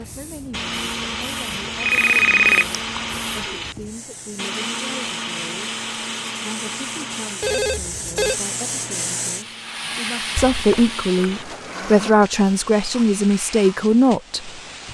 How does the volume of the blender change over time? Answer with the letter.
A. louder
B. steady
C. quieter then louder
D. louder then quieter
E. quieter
E.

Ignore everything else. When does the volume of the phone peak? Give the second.
2 s.